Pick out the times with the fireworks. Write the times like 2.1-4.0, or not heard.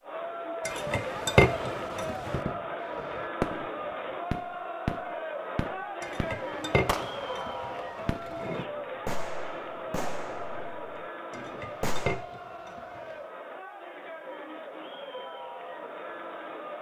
2.0-12.2.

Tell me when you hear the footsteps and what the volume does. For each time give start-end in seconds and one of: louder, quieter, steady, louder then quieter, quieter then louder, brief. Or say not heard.
not heard.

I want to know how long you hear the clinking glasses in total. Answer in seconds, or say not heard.
6 s.